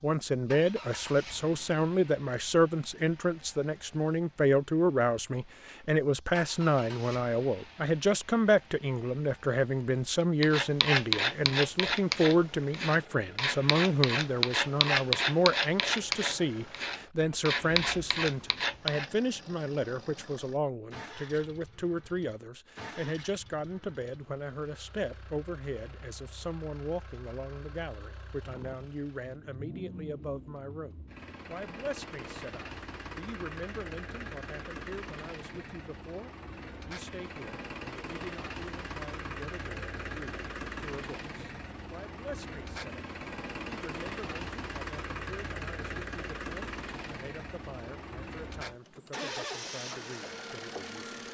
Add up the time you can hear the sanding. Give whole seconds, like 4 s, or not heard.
9 s.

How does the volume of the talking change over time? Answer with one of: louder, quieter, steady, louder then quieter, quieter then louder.
quieter.